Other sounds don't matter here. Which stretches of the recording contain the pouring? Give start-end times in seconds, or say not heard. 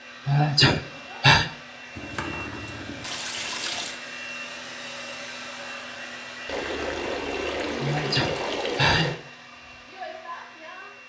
1.9-4.0, 6.5-9.2.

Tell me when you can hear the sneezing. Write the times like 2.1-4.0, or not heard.
0.2-1.5, 7.8-9.2.